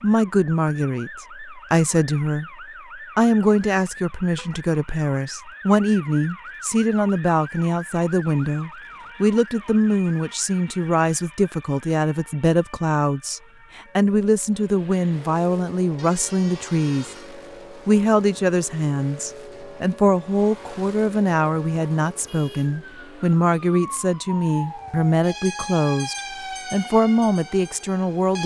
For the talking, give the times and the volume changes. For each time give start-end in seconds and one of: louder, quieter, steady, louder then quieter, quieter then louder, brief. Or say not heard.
0.0-2.5 brief
3.1-17.1 steady
17.9-28.4 steady.